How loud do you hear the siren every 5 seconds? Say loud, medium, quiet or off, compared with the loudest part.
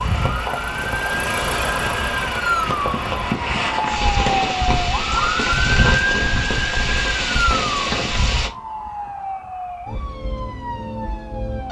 loud, loud, medium.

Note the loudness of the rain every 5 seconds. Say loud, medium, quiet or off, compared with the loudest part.
loud, loud, off.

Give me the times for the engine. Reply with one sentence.
The engine can be heard from 0.0 to 3.4 s.